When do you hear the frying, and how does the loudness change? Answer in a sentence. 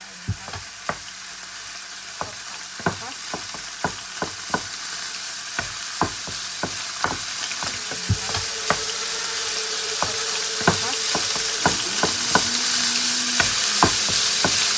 You can hear the frying from 0.0 to 14.7 s, getting louder.